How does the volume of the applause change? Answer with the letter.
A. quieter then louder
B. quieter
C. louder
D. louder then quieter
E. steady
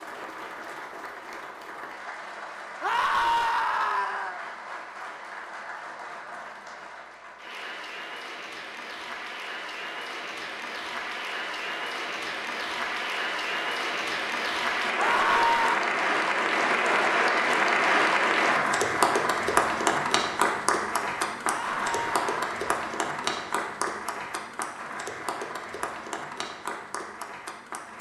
D.